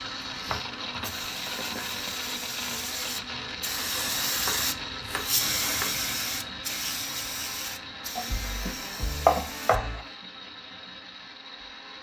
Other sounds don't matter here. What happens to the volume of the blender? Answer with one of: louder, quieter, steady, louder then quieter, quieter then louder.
quieter.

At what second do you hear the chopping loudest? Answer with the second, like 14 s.
9 s.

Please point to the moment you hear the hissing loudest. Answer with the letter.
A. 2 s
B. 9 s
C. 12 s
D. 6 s
D.